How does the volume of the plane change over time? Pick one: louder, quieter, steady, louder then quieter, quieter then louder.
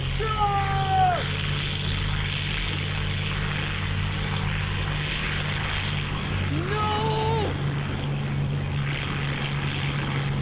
steady.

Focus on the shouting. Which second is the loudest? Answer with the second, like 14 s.
1 s.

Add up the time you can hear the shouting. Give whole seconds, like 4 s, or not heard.
2 s.